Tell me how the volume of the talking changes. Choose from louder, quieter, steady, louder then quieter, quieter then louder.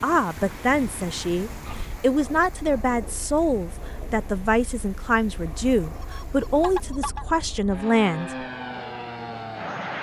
steady.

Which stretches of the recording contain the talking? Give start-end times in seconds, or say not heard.
0.0-8.4.